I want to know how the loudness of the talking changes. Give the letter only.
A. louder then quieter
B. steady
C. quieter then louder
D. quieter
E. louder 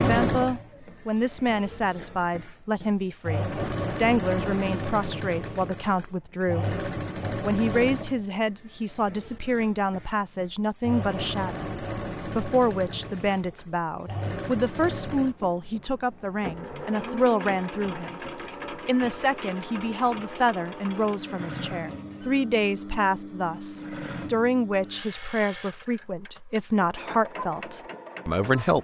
B.